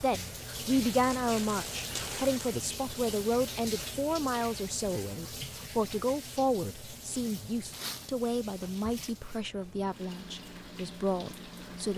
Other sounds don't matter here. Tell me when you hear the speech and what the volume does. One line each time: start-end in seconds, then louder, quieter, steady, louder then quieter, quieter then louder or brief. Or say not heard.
0.0-11.9 quieter.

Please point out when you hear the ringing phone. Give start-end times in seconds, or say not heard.
not heard.